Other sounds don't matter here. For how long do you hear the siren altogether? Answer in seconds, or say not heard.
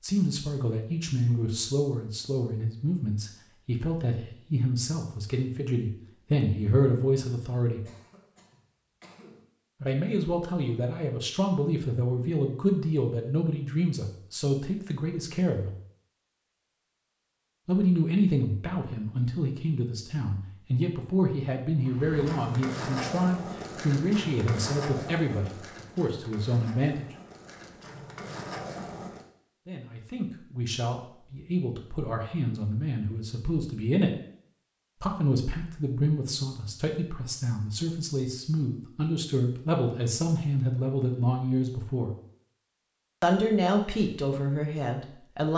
not heard.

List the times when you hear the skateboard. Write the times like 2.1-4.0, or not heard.
21.8-29.2.